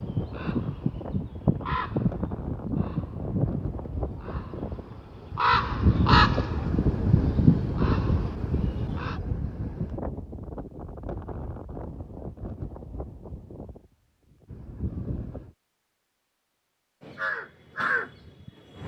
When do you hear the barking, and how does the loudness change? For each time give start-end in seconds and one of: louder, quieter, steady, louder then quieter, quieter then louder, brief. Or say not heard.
not heard.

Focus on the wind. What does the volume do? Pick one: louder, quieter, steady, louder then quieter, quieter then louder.
louder then quieter.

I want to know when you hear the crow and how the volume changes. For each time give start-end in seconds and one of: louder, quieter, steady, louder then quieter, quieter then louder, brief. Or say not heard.
0.0-9.2 quieter then louder
17.0-18.8 brief.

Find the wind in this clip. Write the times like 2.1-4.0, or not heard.
0.0-15.6.